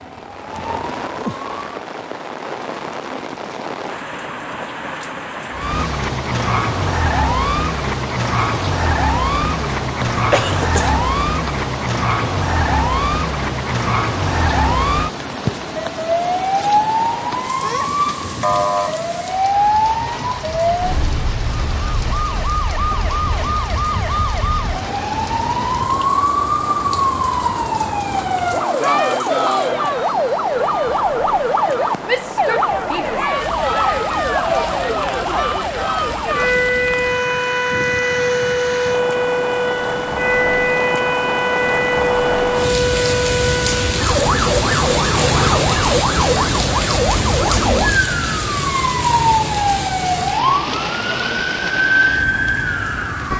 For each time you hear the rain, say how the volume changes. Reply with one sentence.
You can hear the rain from 0.0 to 53.3 s, getting louder.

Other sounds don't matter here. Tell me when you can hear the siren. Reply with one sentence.
The siren can be heard from 0.0 to 1.8 s and from 5.5 to 53.3 s.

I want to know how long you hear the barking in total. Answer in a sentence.
The barking can't be heard in this clip.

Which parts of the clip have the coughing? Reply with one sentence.
You can hear the coughing from 10.1 to 11.0 s.